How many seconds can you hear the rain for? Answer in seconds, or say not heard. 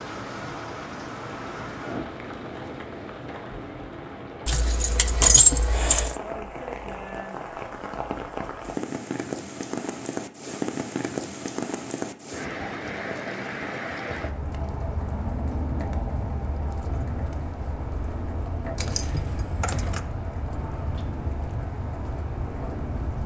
23 s.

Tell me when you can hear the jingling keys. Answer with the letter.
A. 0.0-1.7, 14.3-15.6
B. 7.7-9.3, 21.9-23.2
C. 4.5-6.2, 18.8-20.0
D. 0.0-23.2
C.